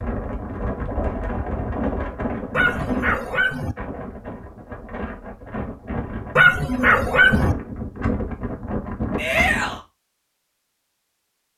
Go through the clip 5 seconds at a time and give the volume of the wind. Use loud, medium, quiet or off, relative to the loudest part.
loud, loud, off.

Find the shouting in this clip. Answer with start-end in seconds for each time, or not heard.
9.2-9.8.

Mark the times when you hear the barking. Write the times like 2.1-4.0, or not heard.
2.5-3.8, 6.3-7.5.